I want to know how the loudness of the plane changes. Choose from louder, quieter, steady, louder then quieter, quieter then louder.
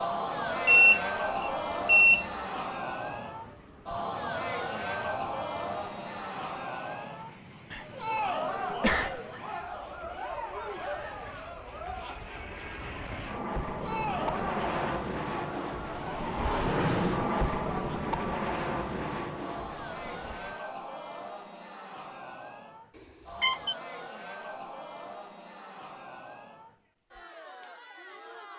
louder.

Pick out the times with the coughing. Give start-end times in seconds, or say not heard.
7.7-9.2.